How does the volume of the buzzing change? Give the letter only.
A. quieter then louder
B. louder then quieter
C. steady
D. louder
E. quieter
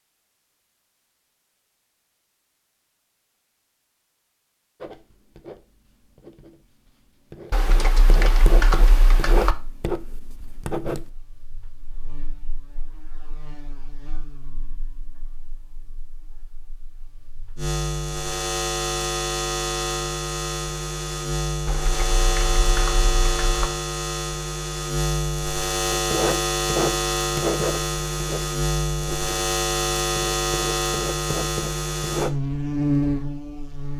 D.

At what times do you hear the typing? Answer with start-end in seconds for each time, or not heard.
7.5-9.6, 21.6-23.7.